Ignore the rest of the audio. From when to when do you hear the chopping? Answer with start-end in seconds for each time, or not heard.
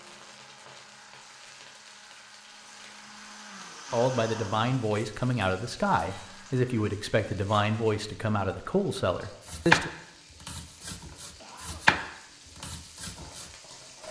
9.4-14.0.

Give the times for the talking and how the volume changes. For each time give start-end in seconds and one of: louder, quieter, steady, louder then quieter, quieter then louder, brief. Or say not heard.
3.9-9.9 steady.